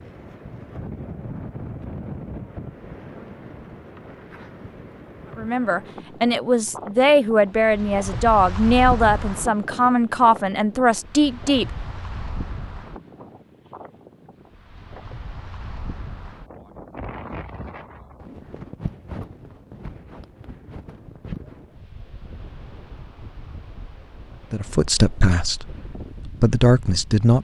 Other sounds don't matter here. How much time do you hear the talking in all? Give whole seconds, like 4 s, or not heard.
9 s.